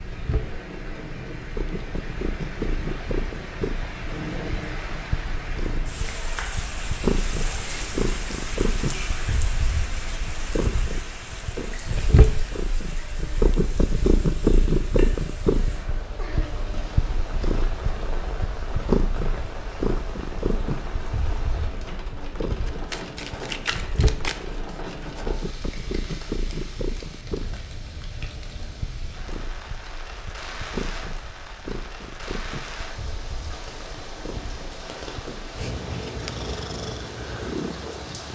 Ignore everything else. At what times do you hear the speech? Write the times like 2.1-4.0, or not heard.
not heard.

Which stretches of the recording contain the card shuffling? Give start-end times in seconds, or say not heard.
22.6-25.2.